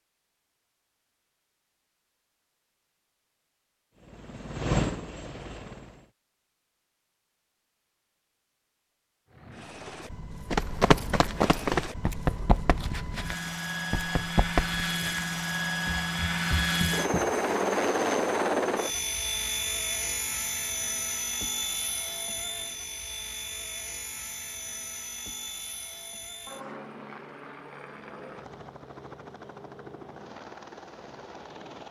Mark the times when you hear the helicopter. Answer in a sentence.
The helicopter can be heard from 4.0 to 6.1 s and from 9.3 to 31.8 s.